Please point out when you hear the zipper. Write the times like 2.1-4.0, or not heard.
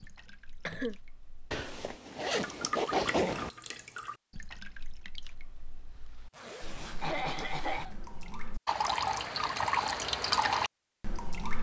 1.5-3.5, 6.3-7.8.